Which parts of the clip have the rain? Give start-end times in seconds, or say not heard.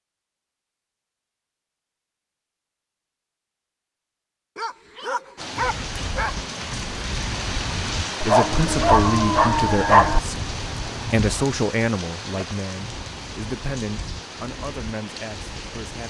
5.3-16.0.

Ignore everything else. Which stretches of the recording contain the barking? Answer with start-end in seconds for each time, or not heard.
4.5-6.5, 8.2-10.2.